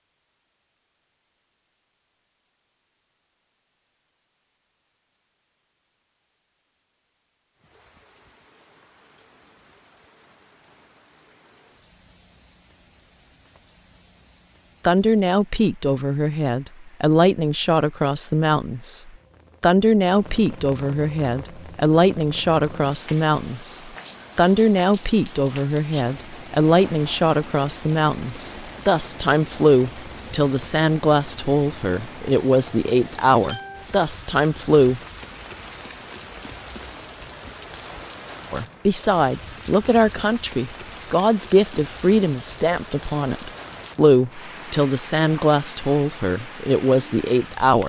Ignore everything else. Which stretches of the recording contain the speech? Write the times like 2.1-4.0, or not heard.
14.8-35.0, 38.5-47.8.